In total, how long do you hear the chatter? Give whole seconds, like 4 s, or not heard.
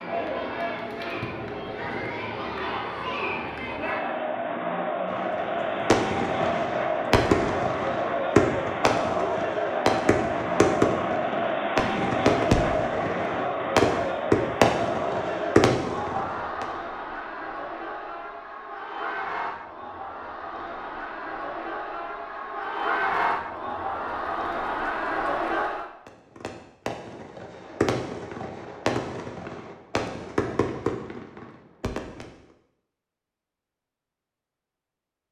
26 s.